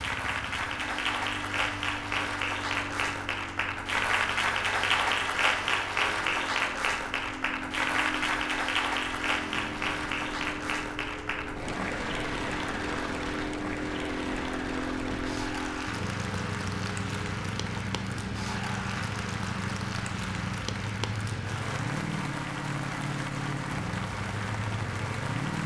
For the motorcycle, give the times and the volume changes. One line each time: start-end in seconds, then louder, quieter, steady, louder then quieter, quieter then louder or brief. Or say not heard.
0.0-25.6 louder.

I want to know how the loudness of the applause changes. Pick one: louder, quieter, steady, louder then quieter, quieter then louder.
quieter.